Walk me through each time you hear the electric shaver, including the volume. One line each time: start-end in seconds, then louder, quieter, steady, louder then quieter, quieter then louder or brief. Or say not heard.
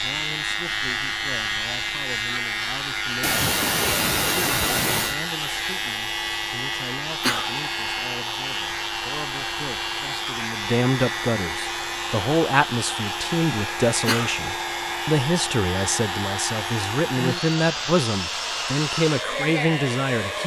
0.0-20.4 quieter.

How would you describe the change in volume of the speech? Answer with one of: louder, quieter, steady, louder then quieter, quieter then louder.
louder.